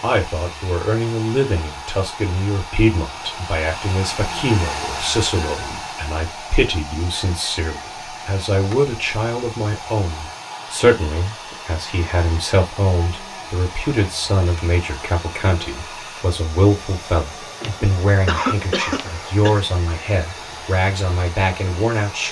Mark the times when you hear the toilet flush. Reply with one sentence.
You can't hear the toilet flush here.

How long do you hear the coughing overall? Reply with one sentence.
You can hear the coughing for 2 seconds altogether.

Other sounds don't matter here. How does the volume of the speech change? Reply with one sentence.
The volume of the speech stays about the same.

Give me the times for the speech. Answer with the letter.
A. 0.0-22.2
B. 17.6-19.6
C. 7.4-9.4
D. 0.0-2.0
A.